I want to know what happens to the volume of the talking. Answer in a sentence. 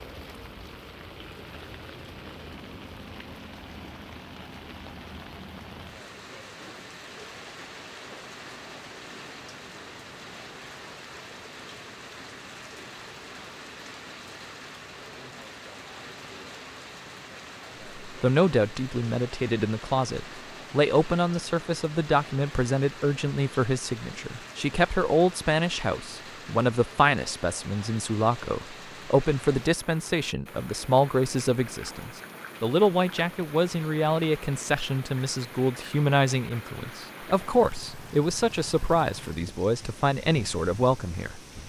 The volume of the talking stays about the same.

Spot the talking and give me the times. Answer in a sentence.
The talking can be heard from 18.0 to 41.4 s.